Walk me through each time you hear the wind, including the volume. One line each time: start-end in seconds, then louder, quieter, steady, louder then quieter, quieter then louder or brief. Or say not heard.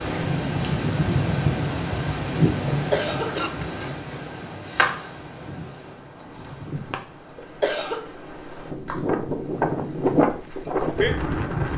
0.0-11.7 quieter then louder.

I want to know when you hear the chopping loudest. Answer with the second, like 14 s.
5 s.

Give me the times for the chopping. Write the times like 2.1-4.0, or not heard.
3.6-5.1.